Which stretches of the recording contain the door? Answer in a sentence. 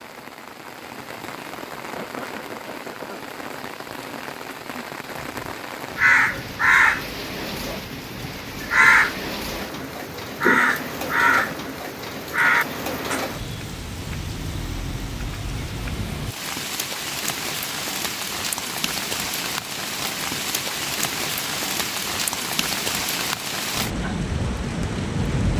You can't hear the door here.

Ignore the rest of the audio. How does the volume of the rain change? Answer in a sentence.
The loudness of the rain goes up.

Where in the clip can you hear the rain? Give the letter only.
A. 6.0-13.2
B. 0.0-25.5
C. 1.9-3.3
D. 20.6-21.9
B.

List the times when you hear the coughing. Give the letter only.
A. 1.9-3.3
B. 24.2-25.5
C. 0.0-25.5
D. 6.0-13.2
A.